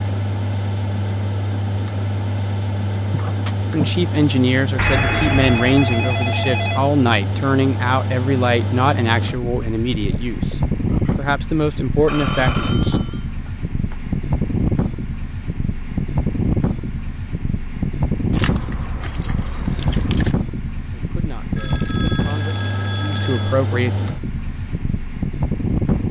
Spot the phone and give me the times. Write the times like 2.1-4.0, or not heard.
4.8-6.8, 12.1-14.0, 21.6-23.6.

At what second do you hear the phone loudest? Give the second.
5 s.